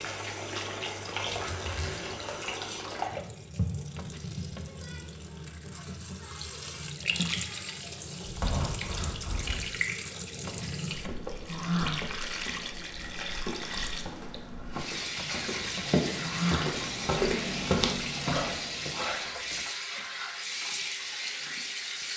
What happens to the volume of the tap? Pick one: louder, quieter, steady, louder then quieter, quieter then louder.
steady.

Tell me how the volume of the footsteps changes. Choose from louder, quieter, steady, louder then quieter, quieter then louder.
louder.